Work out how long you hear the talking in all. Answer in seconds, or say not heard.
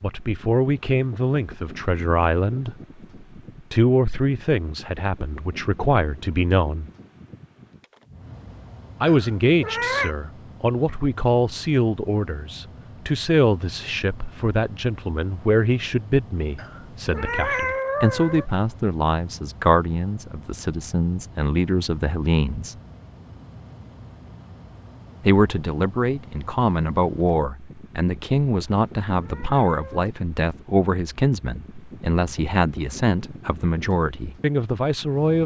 30 s.